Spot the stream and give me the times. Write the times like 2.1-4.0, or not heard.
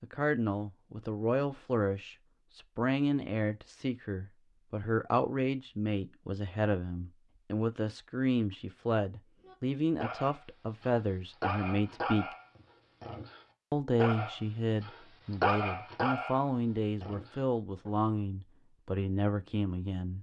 not heard.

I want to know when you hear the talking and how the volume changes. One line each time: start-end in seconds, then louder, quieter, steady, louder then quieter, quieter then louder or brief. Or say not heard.
0.0-12.3 steady
13.7-20.1 steady.